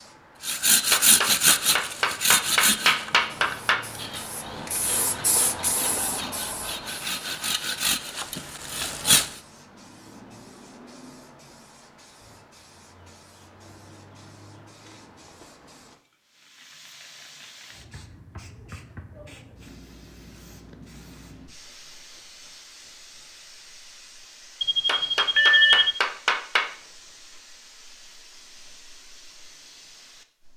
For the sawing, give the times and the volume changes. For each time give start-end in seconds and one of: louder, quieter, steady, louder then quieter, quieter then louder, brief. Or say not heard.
0.4-9.3 quieter then louder.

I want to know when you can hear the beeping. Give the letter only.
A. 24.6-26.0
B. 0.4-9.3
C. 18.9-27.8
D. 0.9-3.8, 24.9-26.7
A.